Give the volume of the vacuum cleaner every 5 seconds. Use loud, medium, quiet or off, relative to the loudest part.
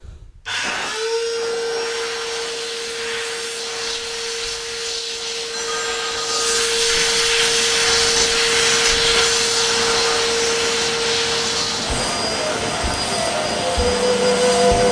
medium, loud, loud.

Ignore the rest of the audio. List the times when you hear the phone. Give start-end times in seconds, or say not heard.
5.5-6.6.